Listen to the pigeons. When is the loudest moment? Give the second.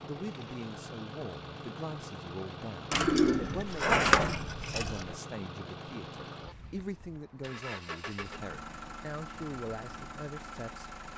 4 s.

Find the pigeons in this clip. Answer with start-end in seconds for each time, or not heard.
2.9-5.2.